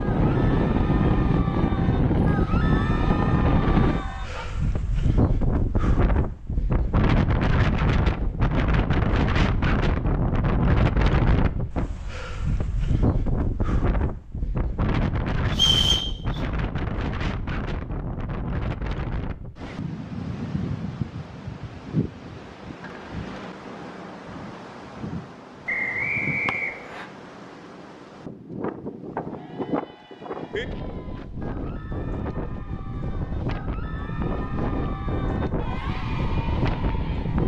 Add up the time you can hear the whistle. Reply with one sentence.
You can hear the whistle for 2 seconds altogether.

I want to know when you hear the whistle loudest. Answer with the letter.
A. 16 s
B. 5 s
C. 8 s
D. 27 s
A.